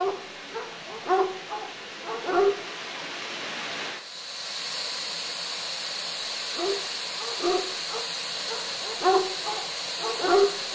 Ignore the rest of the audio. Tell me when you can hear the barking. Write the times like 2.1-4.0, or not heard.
0.0-2.5, 6.5-10.7.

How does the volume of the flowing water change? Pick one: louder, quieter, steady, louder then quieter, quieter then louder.
louder.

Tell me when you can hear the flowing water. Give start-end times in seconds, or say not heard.
0.0-10.7.